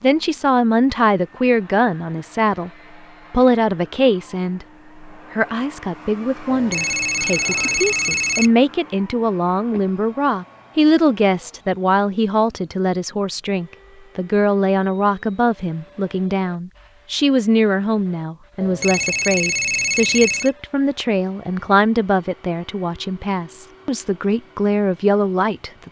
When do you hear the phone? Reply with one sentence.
You can hear the phone from 6.5 to 8.5 s and from 18.6 to 20.5 s.